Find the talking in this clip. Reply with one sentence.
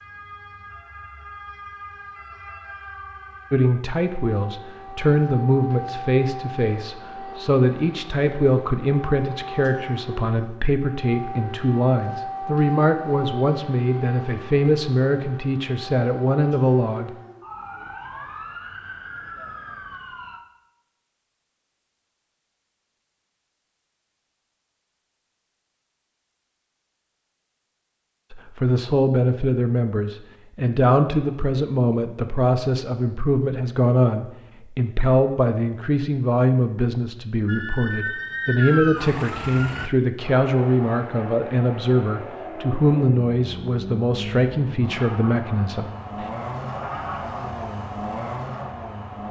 You can hear the talking from 3.5 to 17.1 s and from 28.3 to 46.2 s.